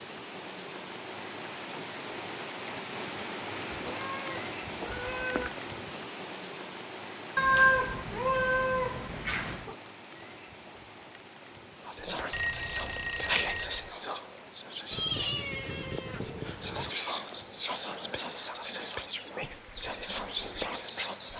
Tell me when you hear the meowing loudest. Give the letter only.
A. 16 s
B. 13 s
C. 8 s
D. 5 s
C.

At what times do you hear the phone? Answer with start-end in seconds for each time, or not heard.
12.3-13.9.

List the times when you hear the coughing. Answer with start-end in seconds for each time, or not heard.
not heard.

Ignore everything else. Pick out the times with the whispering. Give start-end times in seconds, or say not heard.
11.8-21.3.